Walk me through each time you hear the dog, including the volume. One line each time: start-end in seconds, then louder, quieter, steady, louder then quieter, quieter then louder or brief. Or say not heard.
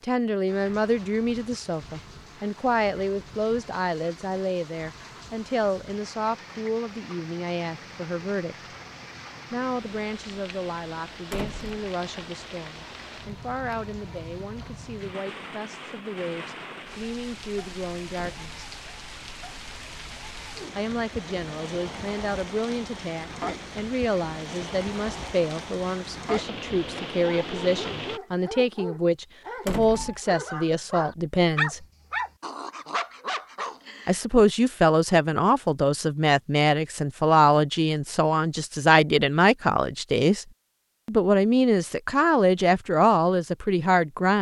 27.2-34.2 louder then quieter.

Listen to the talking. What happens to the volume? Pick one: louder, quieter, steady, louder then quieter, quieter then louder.
quieter then louder.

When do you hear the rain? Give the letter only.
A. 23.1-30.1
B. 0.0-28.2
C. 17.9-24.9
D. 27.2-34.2
B.